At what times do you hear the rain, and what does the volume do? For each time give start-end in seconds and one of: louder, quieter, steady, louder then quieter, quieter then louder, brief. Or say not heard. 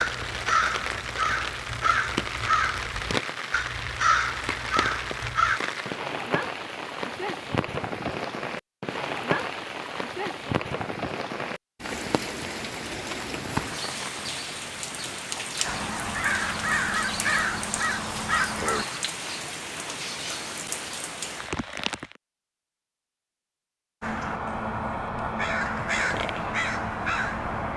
0.0-22.2 steady.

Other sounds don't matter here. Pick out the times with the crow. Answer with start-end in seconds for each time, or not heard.
0.0-5.6, 15.7-18.9, 24.0-27.7.